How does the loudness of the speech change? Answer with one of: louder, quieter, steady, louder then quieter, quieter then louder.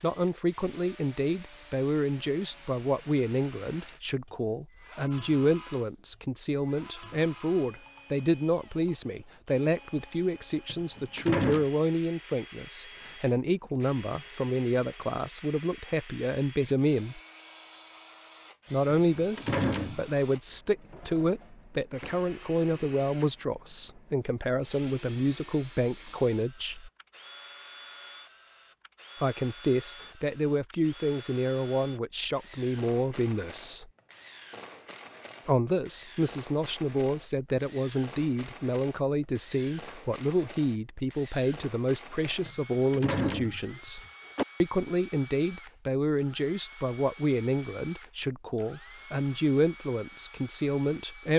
steady.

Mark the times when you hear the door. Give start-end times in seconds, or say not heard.
10.7-11.7, 19.1-20.1, 42.5-44.5.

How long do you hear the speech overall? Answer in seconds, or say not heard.
45 s.